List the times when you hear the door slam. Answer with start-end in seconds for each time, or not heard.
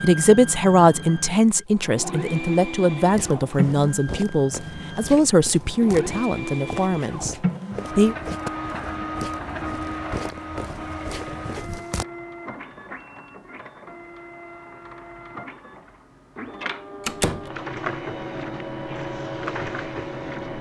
17.1-17.5.